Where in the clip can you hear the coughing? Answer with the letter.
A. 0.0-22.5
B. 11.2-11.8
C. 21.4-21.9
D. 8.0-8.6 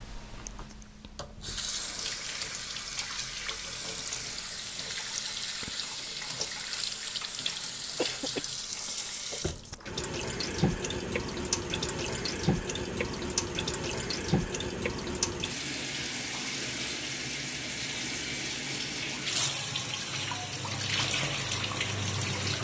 D.